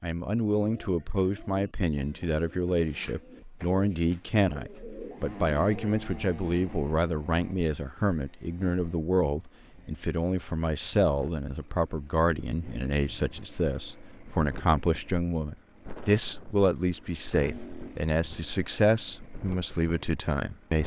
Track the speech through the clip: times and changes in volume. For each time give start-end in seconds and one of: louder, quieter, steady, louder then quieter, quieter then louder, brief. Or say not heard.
0.0-20.8 steady.